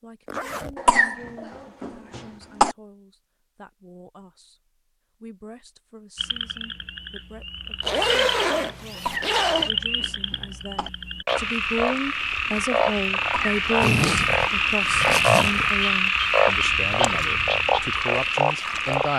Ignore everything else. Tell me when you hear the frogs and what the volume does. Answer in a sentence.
You can hear the frogs from 6.2 to 19.1 s, getting louder.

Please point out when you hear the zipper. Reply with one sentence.
You can hear the zipper from 0.2 to 0.8 s, from 7.8 to 9.7 s and from 13.8 to 15.8 s.